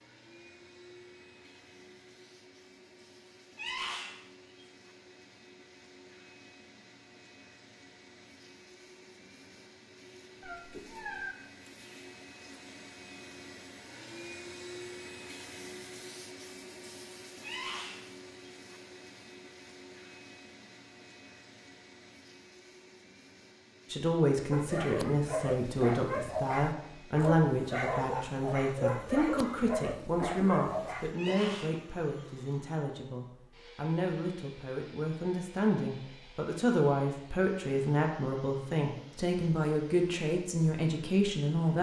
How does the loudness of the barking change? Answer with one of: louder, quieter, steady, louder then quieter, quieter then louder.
steady.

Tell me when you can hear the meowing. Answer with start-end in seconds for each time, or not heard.
10.4-11.3.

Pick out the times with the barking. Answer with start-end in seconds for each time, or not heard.
24.5-31.6.